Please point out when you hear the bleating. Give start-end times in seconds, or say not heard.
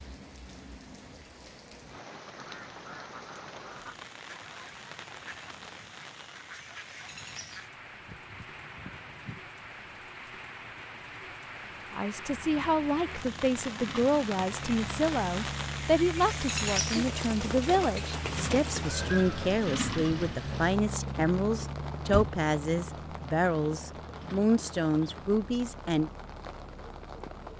not heard.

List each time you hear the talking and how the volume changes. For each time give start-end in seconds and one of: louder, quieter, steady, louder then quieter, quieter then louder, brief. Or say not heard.
11.9-26.1 steady.